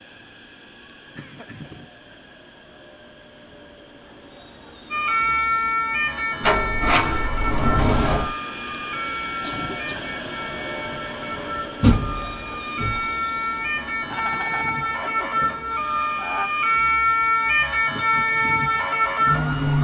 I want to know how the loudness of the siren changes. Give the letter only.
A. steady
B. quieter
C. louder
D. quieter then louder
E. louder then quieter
D.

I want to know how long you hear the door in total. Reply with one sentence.
You can hear the door for 3 seconds altogether.